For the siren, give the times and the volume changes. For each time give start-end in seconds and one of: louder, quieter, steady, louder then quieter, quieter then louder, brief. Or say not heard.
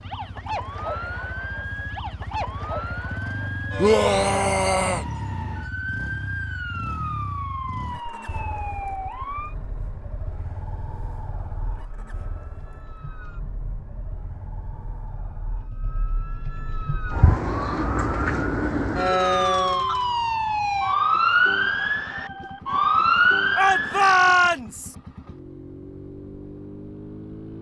0.0-24.3 quieter then louder.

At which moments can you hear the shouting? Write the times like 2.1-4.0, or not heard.
3.8-5.0, 23.6-24.9.